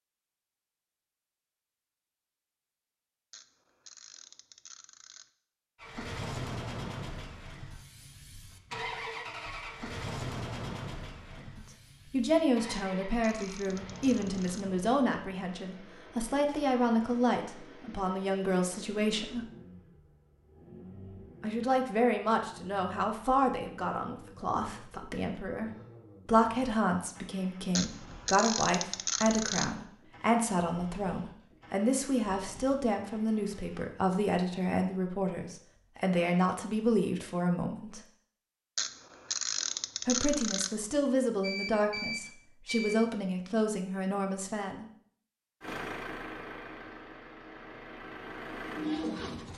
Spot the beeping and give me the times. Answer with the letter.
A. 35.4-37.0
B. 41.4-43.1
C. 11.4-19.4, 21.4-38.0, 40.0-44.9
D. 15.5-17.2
B.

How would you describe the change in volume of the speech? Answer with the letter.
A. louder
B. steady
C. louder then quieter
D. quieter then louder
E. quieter
B.